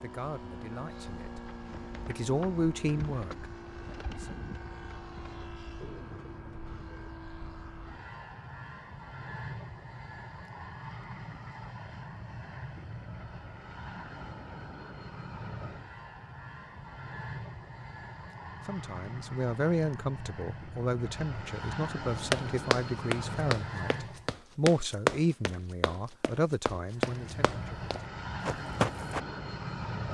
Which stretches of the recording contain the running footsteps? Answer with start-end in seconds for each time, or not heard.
22.1-29.2.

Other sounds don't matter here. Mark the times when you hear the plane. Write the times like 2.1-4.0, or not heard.
0.0-24.4, 26.9-30.0.